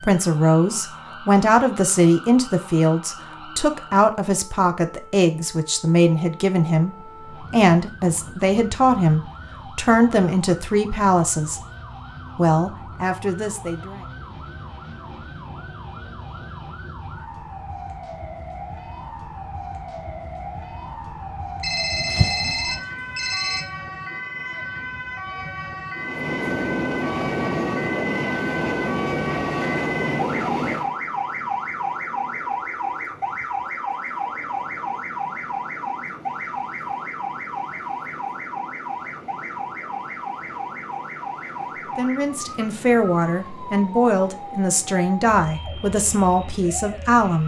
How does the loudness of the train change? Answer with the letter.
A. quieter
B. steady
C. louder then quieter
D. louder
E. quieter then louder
A.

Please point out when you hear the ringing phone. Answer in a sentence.
You can hear the ringing phone from 21.6 to 23.6 s.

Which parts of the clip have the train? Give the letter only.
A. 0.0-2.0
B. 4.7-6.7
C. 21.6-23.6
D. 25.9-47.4
D.